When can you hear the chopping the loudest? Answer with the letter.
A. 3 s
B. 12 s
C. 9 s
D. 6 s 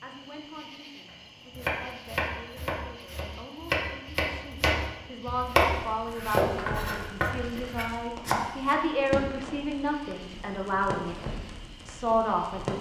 D.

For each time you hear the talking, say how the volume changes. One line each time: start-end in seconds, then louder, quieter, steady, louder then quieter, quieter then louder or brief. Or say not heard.
0.0-11.2 louder
11.8-12.7 brief.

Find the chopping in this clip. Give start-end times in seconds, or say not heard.
1.5-8.8.